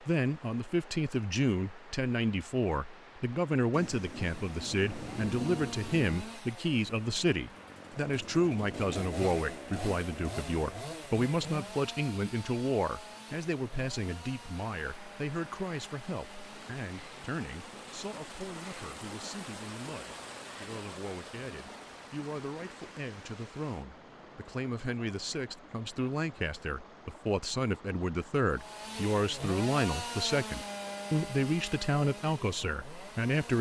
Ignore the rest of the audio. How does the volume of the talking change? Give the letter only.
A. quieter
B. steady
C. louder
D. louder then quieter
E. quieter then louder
E.